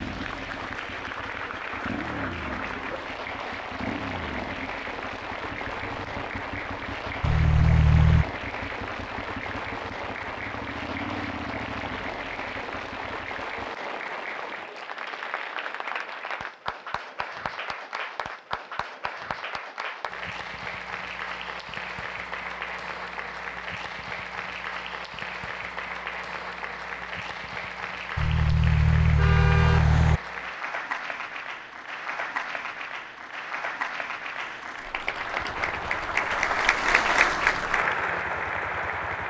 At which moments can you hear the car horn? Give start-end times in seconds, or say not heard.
7.2-8.2, 28.1-30.2.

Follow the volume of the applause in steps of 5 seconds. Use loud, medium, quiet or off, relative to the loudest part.
medium, medium, medium, medium, medium, medium, medium, loud.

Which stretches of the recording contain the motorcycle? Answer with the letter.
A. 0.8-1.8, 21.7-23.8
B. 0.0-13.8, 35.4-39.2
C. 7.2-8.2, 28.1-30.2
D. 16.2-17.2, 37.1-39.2
B.